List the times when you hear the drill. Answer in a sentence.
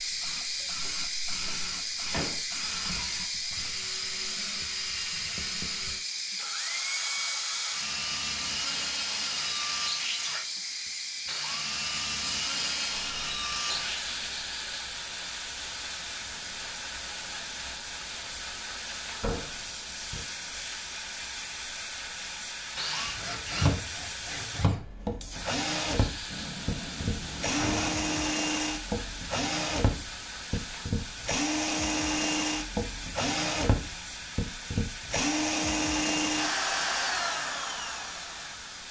You can hear the drill from 0.0 to 14.2 s and from 22.8 to 38.8 s.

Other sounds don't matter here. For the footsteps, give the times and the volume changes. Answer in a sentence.
You can't hear the footsteps here.